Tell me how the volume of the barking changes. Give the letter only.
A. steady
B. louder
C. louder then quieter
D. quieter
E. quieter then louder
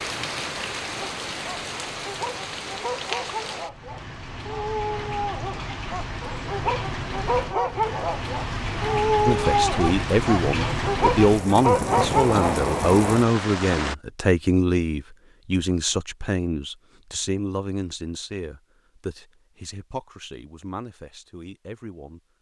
B.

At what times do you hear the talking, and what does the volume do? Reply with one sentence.
You can hear the talking from 9.2 to 22.2 s, getting quieter.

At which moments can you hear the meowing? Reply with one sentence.
You can't hear the meowing here.